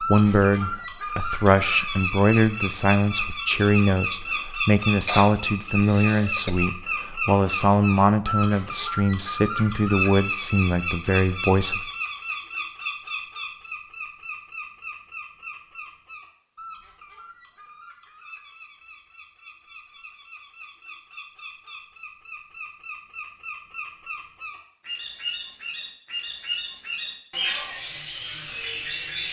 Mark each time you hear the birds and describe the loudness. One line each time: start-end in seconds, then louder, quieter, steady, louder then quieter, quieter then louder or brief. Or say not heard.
0.0-29.2 quieter then louder.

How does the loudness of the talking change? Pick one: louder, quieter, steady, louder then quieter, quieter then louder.
steady.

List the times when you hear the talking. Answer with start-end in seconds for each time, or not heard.
0.0-11.8.